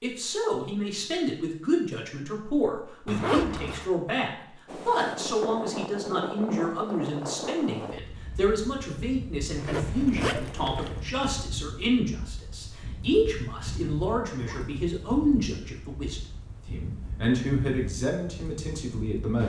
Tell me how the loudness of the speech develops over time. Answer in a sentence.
The loudness of the speech stays about the same.